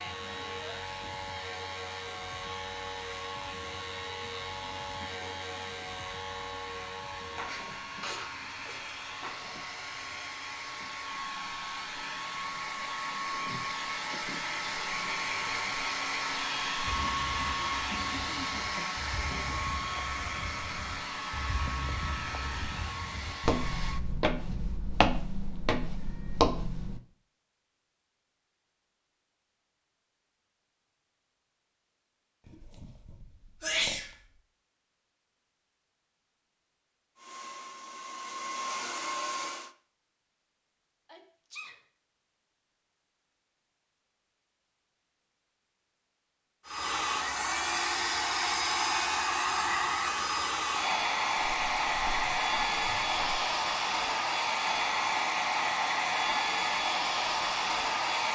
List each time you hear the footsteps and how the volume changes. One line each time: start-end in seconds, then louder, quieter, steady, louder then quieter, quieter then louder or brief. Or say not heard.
16.9-27.0 louder
51.6-53.4 brief.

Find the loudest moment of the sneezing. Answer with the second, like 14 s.
34 s.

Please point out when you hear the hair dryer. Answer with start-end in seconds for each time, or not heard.
0.0-24.1, 37.1-39.8, 46.6-58.3.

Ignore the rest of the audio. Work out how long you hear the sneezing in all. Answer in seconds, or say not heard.
4 s.